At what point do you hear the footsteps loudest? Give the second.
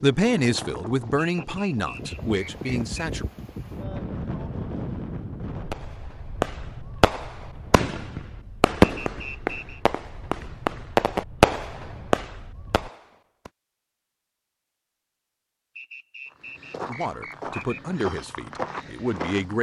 19 s.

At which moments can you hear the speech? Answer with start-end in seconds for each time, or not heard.
0.0-3.2, 16.8-19.5.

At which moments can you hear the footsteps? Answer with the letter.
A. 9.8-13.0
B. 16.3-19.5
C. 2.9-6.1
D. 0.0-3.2
B.